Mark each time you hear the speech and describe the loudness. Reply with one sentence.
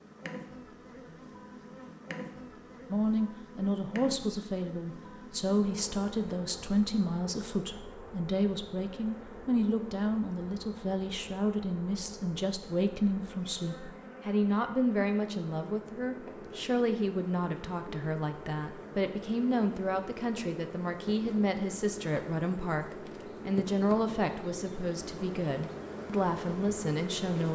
You can hear the speech from 2.9 to 27.5 s, at a steady volume.